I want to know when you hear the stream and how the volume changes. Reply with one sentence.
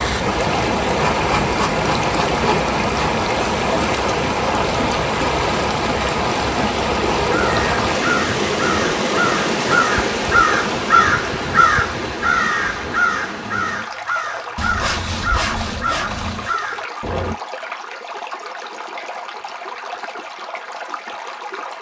The stream can be heard from 0.0 to 21.7 s, getting quieter.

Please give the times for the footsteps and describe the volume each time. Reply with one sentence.
The footsteps can't be heard in this clip.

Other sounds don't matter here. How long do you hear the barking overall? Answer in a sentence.
You can't hear the barking here.